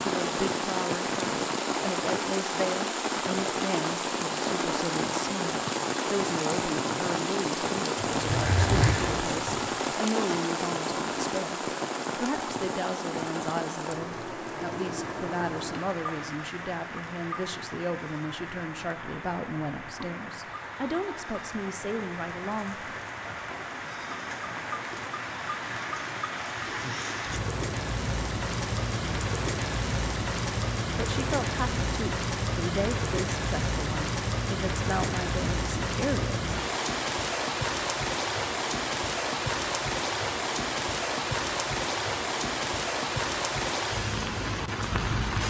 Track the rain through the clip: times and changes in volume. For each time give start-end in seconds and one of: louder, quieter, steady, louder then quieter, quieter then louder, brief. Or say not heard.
0.0-45.4 quieter then louder.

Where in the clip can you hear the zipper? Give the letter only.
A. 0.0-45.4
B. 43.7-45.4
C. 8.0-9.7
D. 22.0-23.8
C.